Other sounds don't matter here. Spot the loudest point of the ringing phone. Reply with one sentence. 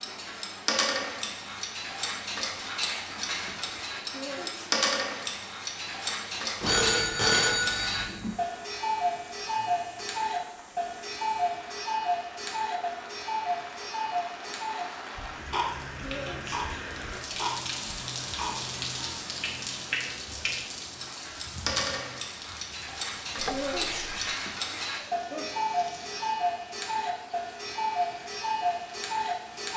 The loudest moment of the ringing phone is at 7 seconds.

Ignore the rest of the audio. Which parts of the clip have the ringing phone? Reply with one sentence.
The ringing phone can be heard from 6.6 to 8.4 s and from 23.4 to 24.4 s.